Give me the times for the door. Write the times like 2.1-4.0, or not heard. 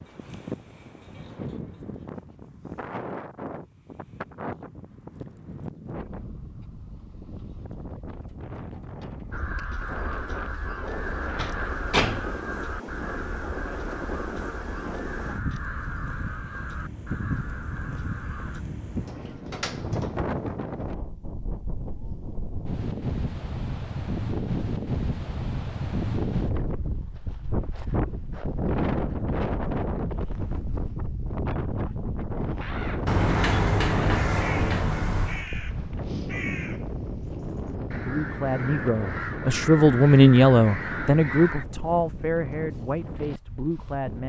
10.8-12.4, 18.9-20.4, 33.0-35.5.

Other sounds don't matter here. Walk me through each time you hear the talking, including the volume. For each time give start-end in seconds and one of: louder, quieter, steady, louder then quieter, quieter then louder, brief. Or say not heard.
37.9-44.2 louder then quieter.